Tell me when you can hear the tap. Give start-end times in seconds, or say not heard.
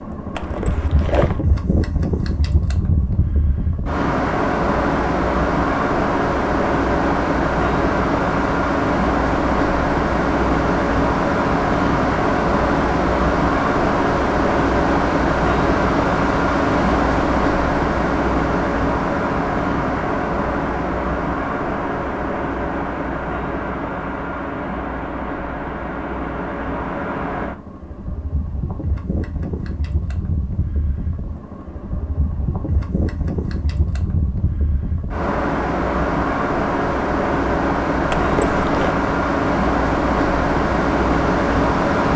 not heard.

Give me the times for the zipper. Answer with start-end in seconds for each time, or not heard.
0.3-1.4, 38.1-39.0.